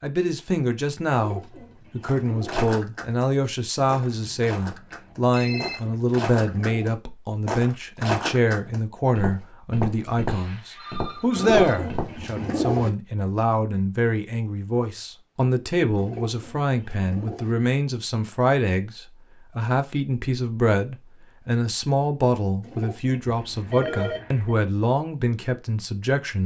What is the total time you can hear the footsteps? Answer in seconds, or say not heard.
10 s.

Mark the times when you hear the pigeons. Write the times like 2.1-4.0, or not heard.
1.1-2.6, 5.3-7.0, 11.3-12.9, 15.9-17.6, 22.6-24.2.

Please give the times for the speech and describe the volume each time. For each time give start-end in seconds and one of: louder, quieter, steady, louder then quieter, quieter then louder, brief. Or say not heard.
0.0-26.4 steady.